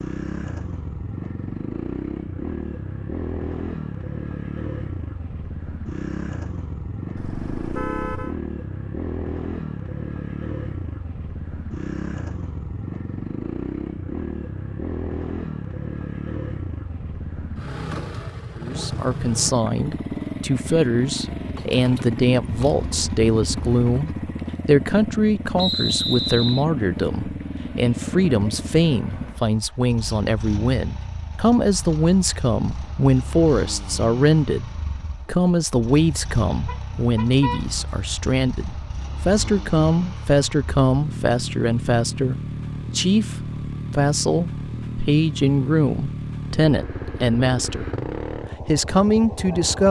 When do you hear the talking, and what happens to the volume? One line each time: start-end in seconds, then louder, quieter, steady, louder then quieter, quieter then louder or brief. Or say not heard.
18.6-47.9 steady
48.6-49.8 brief.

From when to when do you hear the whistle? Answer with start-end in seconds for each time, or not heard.
25.6-26.6.